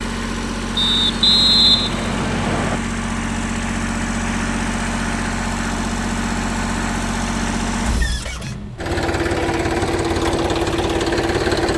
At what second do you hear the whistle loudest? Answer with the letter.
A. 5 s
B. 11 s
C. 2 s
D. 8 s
C.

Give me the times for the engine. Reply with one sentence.
The engine can be heard from 0.0 to 11.7 s.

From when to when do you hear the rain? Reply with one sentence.
The rain can't be heard in this clip.